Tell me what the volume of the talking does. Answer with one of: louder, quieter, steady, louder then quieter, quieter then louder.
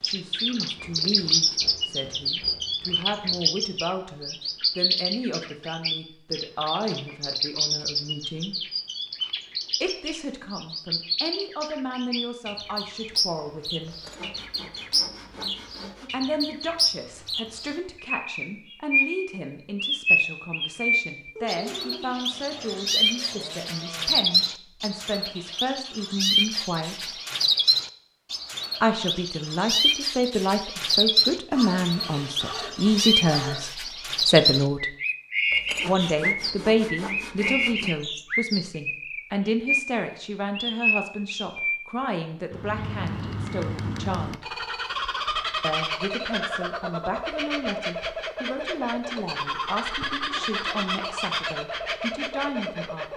louder then quieter.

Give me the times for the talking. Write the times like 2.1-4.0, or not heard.
0.0-8.6, 9.8-13.9, 16.1-27.2, 28.8-35.0, 35.9-44.5, 45.6-53.1.